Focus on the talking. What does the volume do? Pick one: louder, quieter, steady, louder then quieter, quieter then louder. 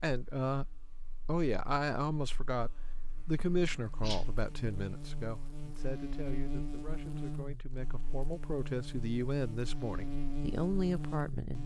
quieter then louder.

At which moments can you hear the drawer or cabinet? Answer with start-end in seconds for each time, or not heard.
not heard.